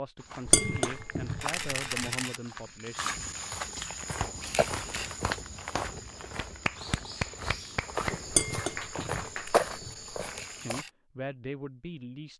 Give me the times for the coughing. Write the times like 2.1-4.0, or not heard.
not heard.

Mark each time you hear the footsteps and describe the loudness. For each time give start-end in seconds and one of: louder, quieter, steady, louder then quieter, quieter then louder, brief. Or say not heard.
0.1-10.8 louder.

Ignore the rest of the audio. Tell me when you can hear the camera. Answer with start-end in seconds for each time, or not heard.
1.4-2.4, 4.4-5.1, 10.2-10.9.